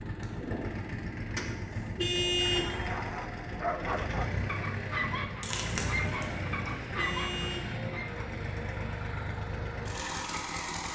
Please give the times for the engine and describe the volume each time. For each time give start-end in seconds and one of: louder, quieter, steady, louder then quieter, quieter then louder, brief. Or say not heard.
0.0-10.9 steady.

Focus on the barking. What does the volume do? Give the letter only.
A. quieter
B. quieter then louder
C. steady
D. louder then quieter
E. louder
C.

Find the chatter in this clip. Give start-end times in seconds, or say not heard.
not heard.